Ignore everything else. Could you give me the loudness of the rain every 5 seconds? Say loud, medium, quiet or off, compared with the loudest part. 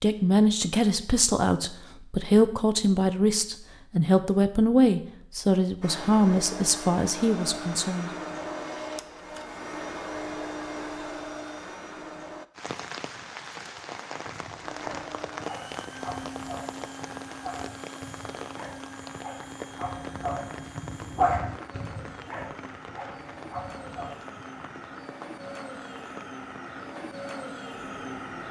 off, off, loud, loud, medium, medium.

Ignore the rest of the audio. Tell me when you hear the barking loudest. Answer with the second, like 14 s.
21 s.